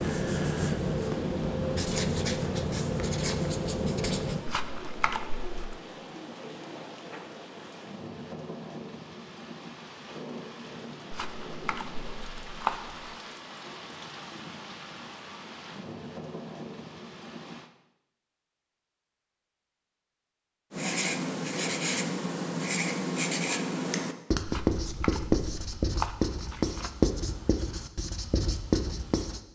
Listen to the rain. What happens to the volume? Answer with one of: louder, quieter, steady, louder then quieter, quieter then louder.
steady.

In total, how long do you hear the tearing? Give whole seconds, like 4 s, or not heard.
6 s.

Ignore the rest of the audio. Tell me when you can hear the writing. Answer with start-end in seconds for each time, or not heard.
0.0-4.5, 20.7-29.4.